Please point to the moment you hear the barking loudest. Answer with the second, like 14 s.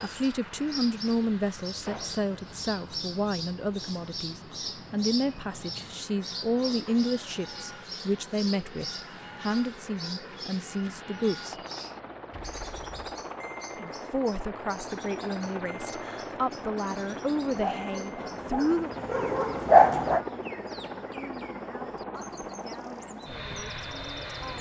20 s.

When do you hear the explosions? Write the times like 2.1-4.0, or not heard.
1.8-2.2, 12.3-13.2.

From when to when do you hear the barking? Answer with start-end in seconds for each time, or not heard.
17.6-20.2.